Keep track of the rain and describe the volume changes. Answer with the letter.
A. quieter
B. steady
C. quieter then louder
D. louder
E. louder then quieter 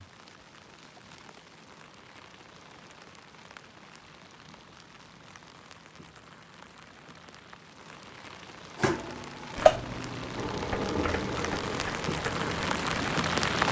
D.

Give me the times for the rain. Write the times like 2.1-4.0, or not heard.
0.0-13.6.